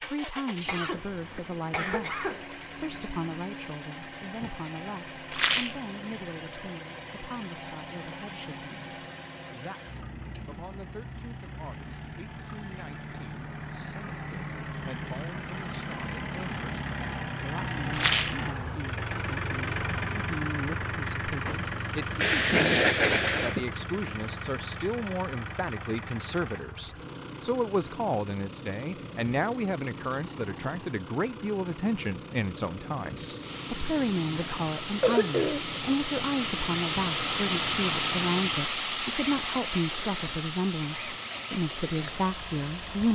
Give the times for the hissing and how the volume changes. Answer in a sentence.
You can hear the hissing from 33.1 to 43.1 s, getting louder then quieter.